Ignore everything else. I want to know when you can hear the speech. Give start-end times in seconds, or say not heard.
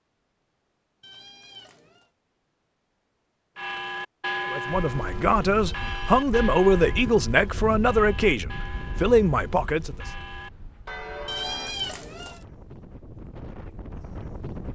4.5-9.9.